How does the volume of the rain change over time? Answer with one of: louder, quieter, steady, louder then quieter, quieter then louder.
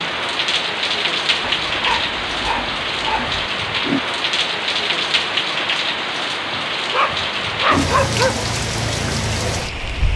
steady.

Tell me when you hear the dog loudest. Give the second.
8 s.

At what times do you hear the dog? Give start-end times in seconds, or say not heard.
1.4-3.5, 6.9-8.4.